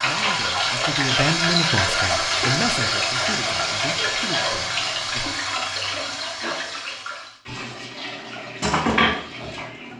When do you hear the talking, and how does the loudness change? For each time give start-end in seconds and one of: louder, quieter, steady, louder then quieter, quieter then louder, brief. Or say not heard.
0.0-5.2 quieter.